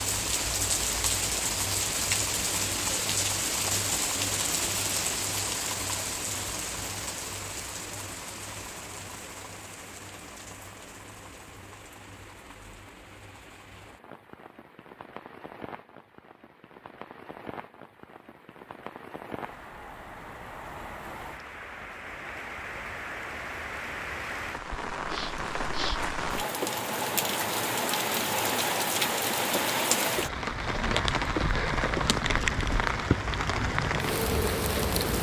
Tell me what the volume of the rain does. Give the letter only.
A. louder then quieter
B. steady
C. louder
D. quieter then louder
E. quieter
D.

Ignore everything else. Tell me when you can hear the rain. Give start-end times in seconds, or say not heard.
0.0-35.1.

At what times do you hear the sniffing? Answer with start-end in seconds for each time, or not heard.
25.1-26.0.